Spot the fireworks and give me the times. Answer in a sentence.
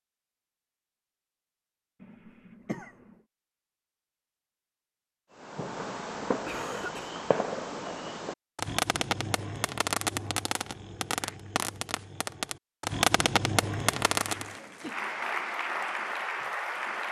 The fireworks can be heard from 5.3 to 14.5 s.